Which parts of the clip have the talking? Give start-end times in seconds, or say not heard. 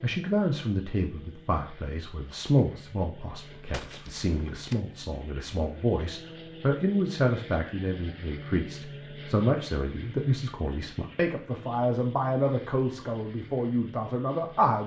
0.0-14.8.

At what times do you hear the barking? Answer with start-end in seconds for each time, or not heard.
not heard.